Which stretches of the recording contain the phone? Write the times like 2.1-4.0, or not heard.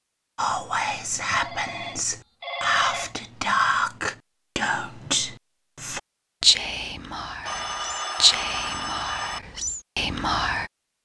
1.3-3.1, 7.4-9.4.